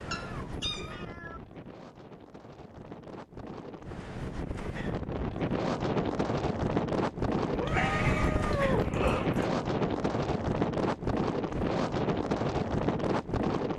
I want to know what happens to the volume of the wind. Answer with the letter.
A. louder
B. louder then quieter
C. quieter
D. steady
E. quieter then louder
A.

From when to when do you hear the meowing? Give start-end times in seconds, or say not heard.
0.1-1.4, 7.5-9.5.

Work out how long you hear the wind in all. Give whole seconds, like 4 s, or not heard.
14 s.